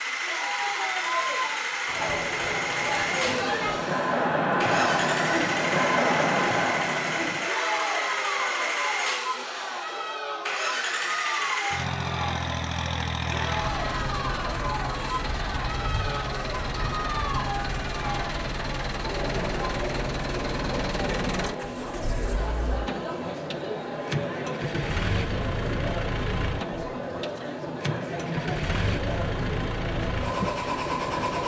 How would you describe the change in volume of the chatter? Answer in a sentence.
The loudness of the chatter goes down.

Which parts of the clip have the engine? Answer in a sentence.
The engine can be heard from 0.0 to 31.4 s.